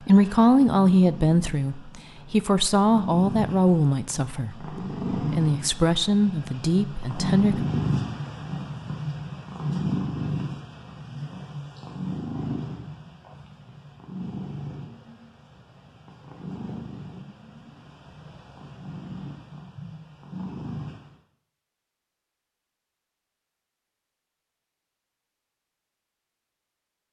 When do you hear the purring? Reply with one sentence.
You can hear the purring from 0.0 to 21.1 s.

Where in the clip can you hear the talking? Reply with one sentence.
The talking can be heard from 0.1 to 4.7 s and from 5.3 to 7.7 s.